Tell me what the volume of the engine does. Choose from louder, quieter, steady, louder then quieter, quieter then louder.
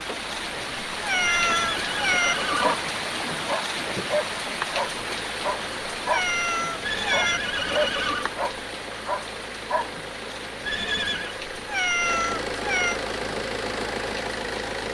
louder.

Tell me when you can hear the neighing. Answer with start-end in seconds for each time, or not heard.
1.2-2.8, 6.8-8.3, 10.6-11.4.